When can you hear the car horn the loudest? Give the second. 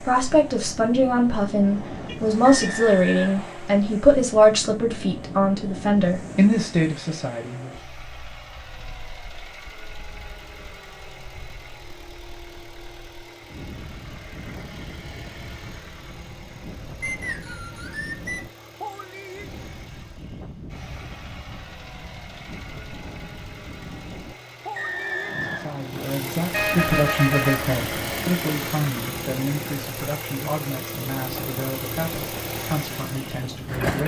27 s.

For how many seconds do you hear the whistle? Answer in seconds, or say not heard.
4 s.